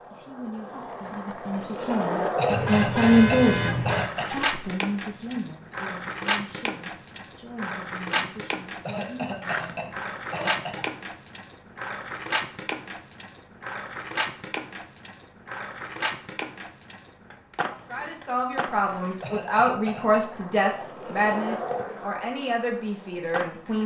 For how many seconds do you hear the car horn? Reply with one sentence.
The car horn can be heard for 2 seconds in total.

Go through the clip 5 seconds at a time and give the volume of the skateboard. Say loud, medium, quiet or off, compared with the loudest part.
loud, loud, loud, medium, medium.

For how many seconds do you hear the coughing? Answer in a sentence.
You can hear the coughing for 5 seconds altogether.